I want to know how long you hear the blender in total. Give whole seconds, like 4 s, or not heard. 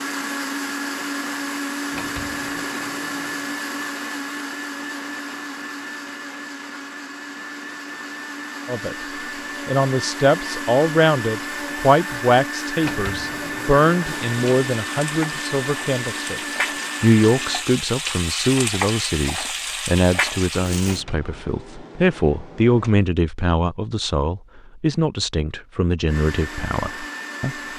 19 s.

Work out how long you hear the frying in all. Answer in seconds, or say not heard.
7 s.